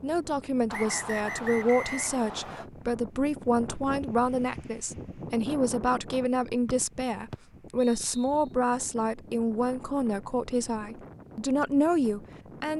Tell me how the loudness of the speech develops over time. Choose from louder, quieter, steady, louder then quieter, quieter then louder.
steady.